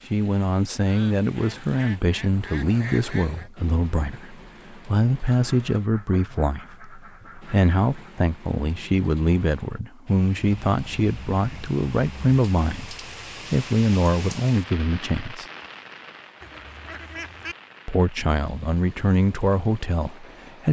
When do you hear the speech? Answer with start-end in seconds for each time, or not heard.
0.1-15.4, 17.9-20.6.